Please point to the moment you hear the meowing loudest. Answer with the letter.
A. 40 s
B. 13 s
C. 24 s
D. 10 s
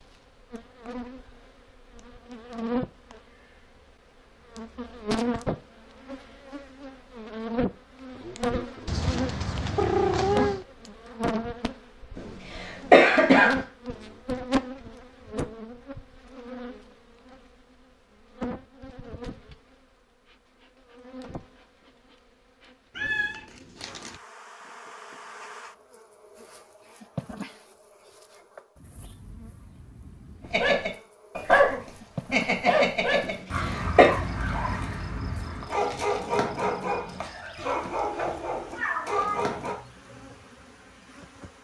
D.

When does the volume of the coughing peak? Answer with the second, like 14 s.
13 s.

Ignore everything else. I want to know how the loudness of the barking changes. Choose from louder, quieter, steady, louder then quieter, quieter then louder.
quieter.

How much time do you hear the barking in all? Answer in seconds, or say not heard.
9 s.